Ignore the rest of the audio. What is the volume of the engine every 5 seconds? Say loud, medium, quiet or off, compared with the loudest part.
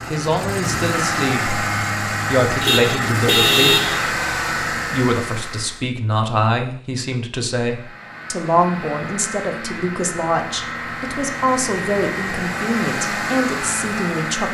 loud, medium, loud.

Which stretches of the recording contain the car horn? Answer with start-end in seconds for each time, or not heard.
2.6-4.1.